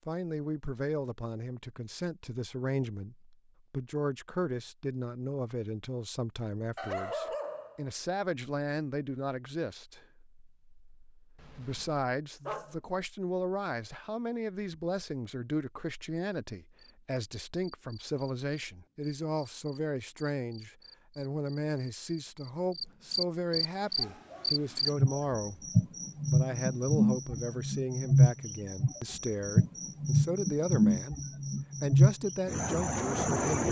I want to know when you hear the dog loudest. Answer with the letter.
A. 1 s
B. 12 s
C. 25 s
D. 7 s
D.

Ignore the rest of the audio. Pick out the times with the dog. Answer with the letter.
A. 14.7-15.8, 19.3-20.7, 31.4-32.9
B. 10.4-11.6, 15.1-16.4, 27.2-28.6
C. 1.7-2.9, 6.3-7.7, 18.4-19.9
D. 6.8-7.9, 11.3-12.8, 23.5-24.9
D.